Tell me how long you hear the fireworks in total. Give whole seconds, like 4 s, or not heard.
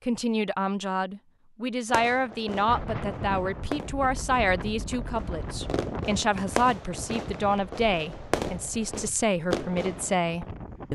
8 s.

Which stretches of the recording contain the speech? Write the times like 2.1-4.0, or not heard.
0.1-10.8.